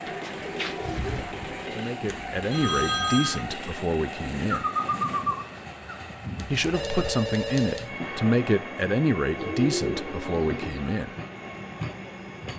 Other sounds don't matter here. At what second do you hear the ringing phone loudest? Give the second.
3 s.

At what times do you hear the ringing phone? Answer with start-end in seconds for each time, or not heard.
2.0-3.5, 6.5-7.9.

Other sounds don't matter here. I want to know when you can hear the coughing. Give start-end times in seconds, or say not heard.
not heard.